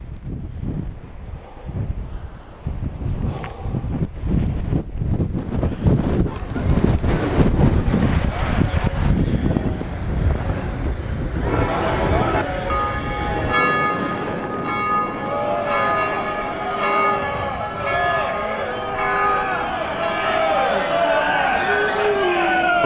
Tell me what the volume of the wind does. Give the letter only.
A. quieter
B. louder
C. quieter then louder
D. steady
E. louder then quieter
E.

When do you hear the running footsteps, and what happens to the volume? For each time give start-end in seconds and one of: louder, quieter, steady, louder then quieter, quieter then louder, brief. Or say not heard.
not heard.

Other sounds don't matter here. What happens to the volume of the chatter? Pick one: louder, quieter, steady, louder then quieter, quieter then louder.
louder.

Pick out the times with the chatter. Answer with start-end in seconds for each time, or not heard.
6.2-22.8.